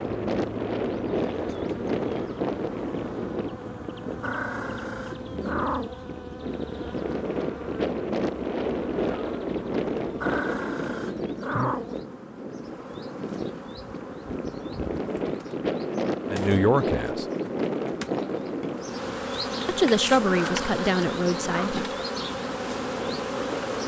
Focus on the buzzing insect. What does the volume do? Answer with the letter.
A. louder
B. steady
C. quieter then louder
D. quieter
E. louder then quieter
A.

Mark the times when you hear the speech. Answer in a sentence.
The speech can be heard from 16.3 to 17.2 s and from 19.6 to 21.9 s.